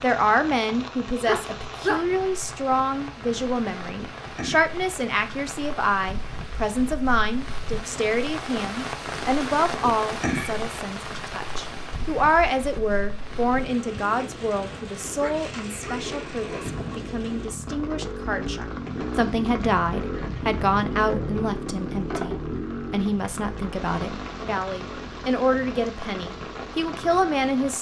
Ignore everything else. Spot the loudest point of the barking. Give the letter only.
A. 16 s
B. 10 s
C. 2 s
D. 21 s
C.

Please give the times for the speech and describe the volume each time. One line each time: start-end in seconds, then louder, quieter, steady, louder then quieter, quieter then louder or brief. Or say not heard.
0.0-27.7 steady.